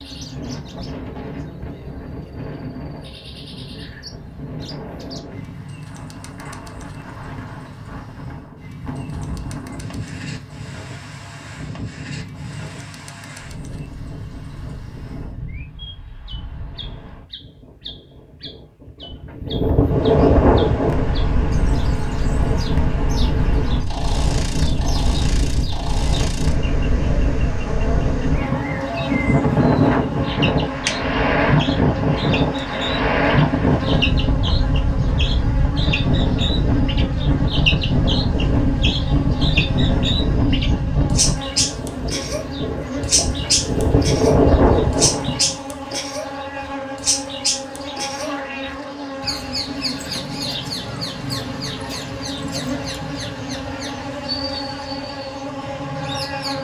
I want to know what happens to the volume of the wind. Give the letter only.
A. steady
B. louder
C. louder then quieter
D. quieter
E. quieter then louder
B.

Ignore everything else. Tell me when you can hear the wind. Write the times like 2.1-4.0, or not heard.
0.0-45.5.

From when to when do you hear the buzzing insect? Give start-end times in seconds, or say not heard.
19.8-56.5.